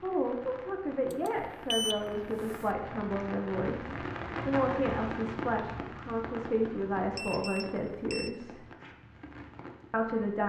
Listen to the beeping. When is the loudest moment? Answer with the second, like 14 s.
2 s.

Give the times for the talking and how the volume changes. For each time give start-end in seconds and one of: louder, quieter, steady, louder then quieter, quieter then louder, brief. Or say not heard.
0.0-8.7 steady
9.9-10.4 brief.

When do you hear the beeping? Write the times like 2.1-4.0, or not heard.
1.1-2.6, 7.2-8.3.